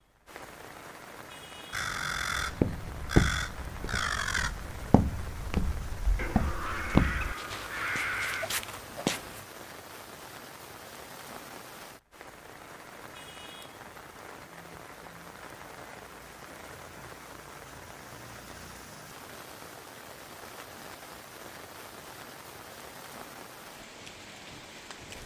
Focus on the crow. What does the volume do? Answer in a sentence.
The loudness of the crow goes down, then up.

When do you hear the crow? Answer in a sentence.
You can hear the crow from 1.7 to 8.6 s.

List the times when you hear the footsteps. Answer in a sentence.
You can hear the footsteps from 2.4 to 9.4 s.